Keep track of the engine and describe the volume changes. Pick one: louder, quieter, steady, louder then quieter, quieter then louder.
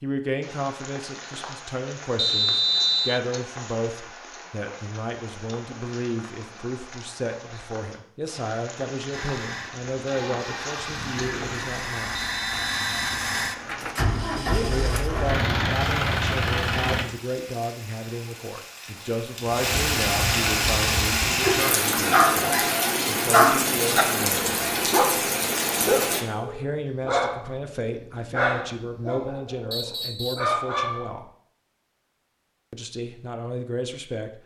louder.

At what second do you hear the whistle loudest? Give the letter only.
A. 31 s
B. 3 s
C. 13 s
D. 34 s
B.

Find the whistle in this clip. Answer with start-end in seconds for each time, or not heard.
2.1-3.2, 12.2-13.1, 29.7-30.6.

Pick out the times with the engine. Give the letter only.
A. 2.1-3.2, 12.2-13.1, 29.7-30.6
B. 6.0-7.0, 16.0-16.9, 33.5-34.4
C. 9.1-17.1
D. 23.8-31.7
C.